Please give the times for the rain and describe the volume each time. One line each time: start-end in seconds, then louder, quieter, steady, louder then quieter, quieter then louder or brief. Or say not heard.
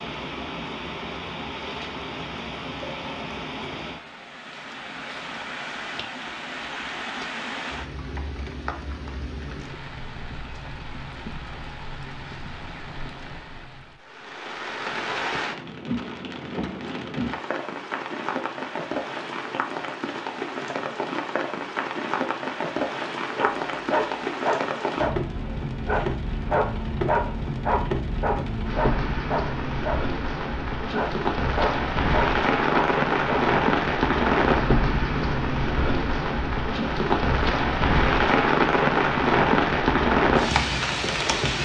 0.0-41.5 louder.